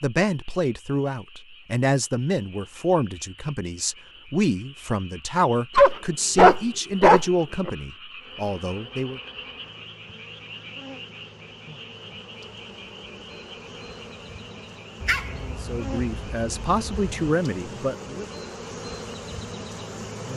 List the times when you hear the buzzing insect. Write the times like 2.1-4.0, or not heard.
8.2-20.3.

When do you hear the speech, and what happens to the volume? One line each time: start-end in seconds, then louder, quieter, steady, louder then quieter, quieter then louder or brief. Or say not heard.
0.0-9.2 steady
15.6-18.2 brief.